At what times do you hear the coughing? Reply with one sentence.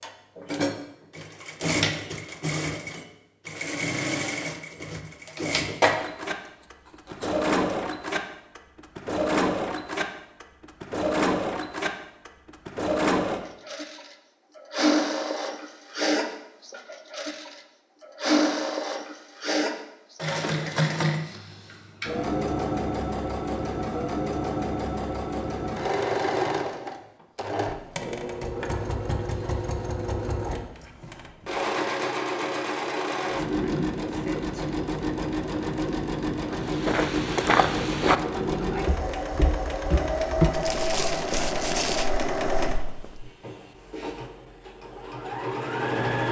You can't hear the coughing here.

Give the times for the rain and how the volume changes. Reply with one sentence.
You can't hear the rain here.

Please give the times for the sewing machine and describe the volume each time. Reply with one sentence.
You can hear the sewing machine from 0.0 to 46.2 s, at a steady volume.